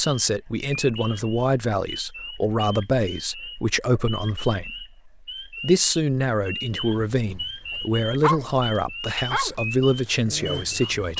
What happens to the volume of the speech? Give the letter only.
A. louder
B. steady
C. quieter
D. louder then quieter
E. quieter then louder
B.